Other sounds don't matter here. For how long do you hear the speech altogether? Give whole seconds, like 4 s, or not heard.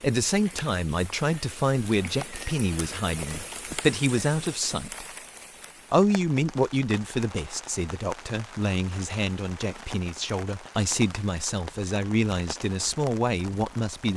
13 s.